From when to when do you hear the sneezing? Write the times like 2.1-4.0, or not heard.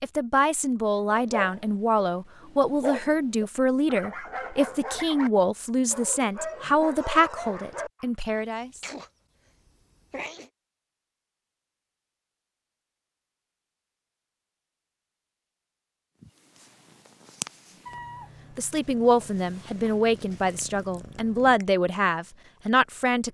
8.3-10.5.